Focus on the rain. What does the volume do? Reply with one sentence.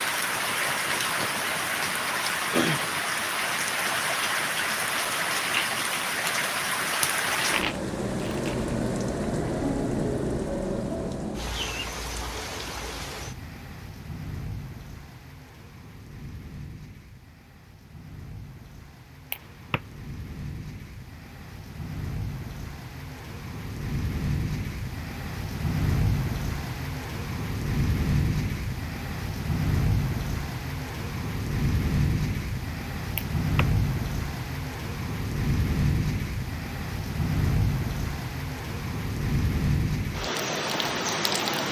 The loudness of the rain goes down, then up.